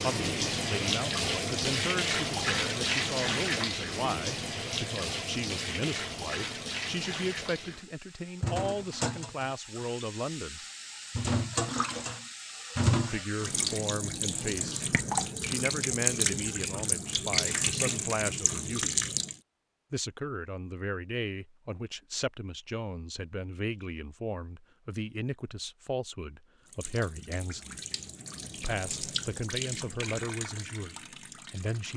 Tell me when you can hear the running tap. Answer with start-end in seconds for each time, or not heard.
0.0-19.4, 26.6-31.9.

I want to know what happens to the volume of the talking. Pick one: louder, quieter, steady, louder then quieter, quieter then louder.
steady.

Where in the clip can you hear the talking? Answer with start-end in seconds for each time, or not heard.
0.0-10.6, 12.9-18.9, 19.9-27.8, 28.6-31.9.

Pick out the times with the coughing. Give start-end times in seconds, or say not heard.
not heard.